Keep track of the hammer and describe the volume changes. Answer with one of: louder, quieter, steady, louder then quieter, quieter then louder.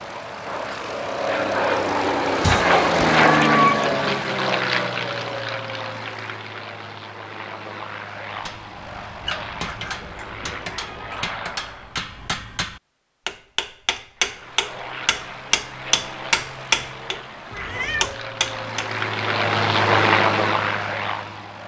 louder.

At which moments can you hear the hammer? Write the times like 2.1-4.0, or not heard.
8.4-18.9.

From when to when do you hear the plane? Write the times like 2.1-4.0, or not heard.
0.0-12.0, 14.2-21.6.